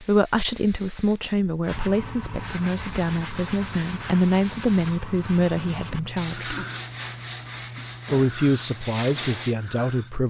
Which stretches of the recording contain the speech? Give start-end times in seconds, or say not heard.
0.0-6.5, 8.1-10.2.